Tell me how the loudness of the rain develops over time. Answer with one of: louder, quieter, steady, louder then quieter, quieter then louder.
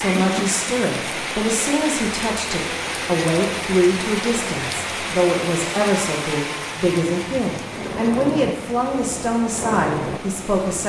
quieter.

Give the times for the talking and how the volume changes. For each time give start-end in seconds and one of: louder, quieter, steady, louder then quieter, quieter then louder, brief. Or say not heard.
0.0-10.8 steady.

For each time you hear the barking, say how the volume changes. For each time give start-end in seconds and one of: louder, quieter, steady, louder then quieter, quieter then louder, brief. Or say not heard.
not heard.